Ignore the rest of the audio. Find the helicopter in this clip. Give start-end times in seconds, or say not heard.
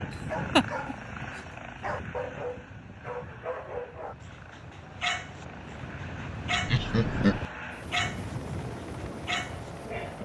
0.0-10.2.